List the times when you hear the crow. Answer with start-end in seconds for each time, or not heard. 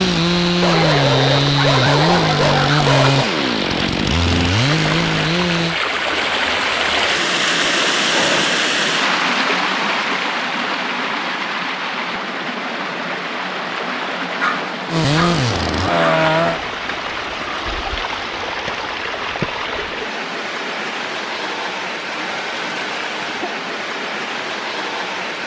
not heard.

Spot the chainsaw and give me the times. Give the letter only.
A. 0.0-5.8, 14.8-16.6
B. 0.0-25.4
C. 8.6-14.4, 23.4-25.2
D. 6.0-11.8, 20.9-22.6
A.